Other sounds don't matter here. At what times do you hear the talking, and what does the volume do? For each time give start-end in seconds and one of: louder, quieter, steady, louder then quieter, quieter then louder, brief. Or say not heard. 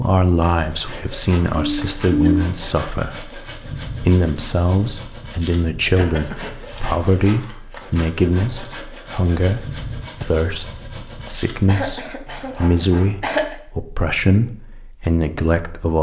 0.0-15.9 steady.